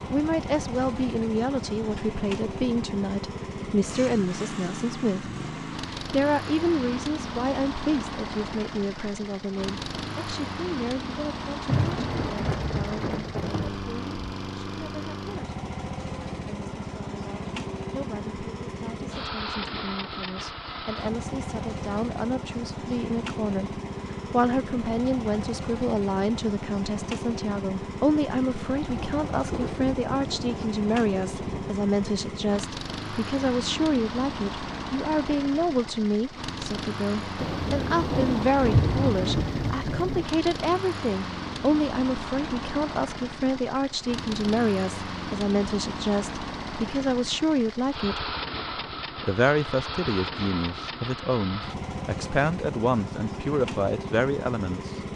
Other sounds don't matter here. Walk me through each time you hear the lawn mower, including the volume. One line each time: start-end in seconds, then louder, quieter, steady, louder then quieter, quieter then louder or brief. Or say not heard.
0.0-55.1 steady.